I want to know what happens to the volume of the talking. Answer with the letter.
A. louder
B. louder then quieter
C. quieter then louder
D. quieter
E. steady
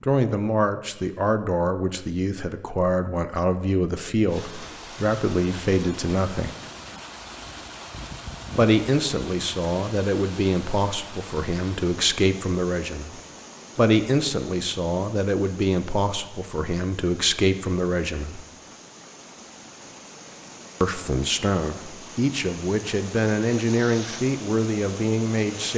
E.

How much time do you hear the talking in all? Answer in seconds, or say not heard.
21 s.